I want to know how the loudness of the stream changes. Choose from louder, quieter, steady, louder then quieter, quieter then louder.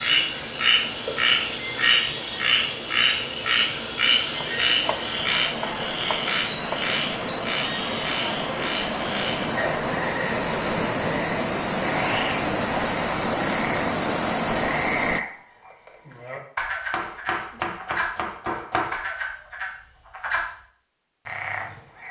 louder.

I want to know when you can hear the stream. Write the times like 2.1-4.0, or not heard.
0.0-15.2.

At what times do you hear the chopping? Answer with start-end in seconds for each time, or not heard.
4.3-6.8, 16.9-18.9.